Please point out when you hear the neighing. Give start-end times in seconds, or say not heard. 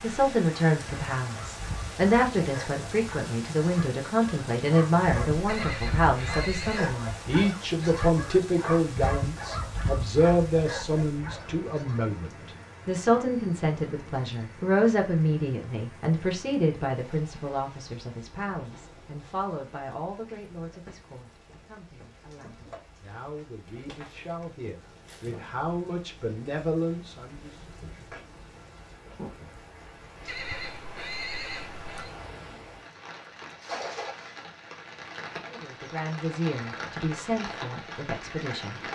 5.5-7.0, 30.2-32.1.